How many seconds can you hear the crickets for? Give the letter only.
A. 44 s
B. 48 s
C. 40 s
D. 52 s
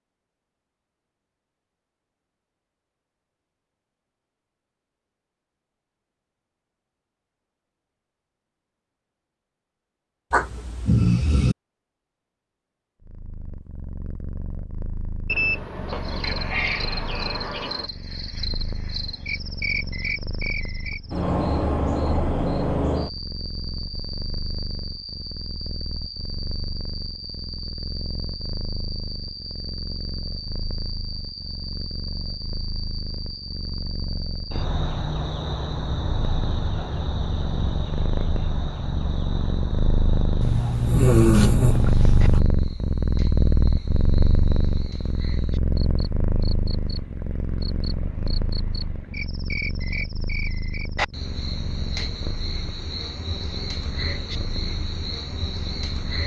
C.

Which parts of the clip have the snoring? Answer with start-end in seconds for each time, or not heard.
10.3-11.6, 40.4-42.4.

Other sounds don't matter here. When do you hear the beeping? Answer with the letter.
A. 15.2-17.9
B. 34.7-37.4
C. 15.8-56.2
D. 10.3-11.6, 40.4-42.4
A.